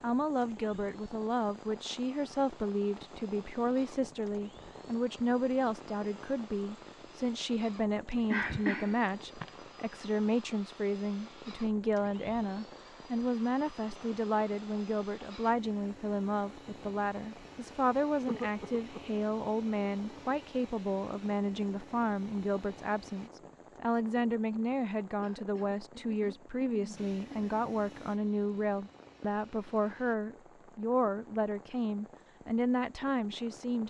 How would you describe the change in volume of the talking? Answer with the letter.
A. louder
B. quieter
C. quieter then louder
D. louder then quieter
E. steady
E.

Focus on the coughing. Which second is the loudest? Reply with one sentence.
The volume of the coughing peaks at 9 seconds.